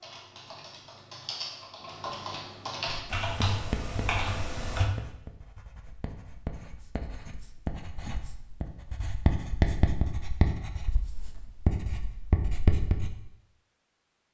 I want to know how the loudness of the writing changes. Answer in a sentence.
The loudness of the writing goes up.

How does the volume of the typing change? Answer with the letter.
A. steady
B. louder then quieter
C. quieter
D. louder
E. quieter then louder
D.